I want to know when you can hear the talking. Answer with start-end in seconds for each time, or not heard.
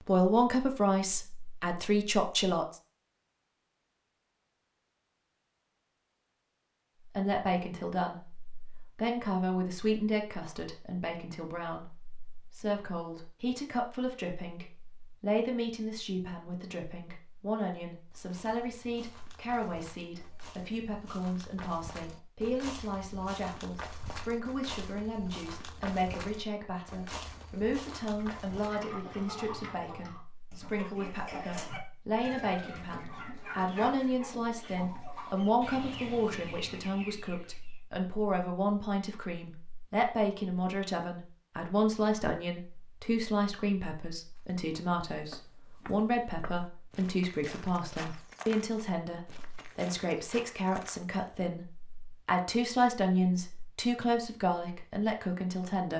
0.1-2.8, 7.1-55.9.